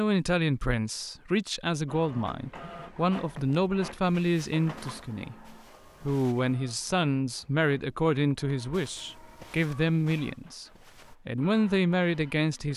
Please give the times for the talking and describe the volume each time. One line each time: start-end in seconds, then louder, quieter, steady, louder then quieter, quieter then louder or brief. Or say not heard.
0.0-10.7 steady
11.2-12.7 brief.